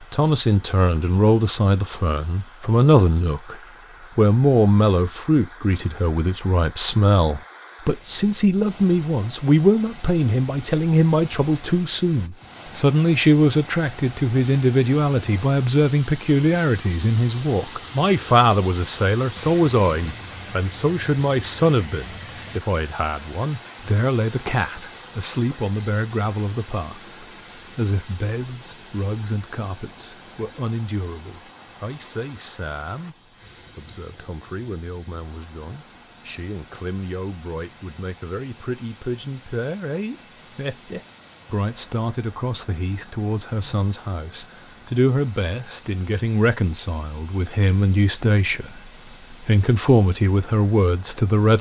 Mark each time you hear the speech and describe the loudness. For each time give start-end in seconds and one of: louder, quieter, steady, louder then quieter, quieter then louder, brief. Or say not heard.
0.0-51.5 quieter then louder.